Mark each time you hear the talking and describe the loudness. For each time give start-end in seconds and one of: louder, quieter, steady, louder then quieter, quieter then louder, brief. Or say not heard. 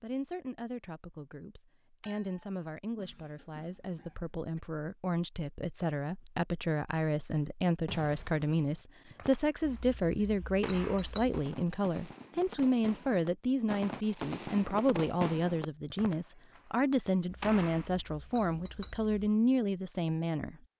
0.0-20.6 louder.